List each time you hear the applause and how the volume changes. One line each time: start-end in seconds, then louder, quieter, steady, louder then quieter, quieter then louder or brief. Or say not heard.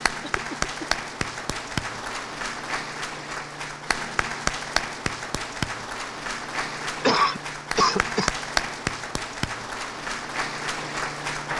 0.0-11.5 steady.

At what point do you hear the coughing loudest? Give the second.
7 s.